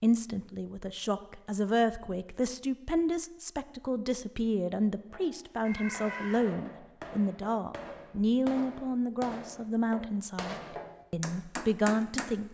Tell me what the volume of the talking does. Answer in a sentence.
The loudness of the talking stays about the same.